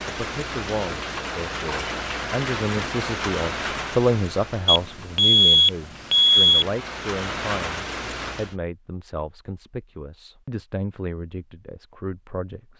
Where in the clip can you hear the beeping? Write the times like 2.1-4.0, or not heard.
4.7-6.7.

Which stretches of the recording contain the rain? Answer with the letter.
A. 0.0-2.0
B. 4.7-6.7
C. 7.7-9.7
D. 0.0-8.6
D.